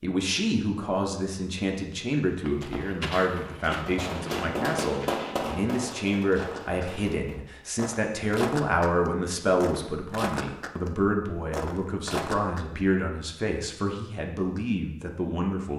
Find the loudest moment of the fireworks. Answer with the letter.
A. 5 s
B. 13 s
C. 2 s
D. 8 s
A.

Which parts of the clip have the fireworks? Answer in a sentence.
You can hear the fireworks from 3.9 to 7.4 s.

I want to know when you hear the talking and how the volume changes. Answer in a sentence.
You can hear the talking from 0.0 to 15.7 s, at a steady volume.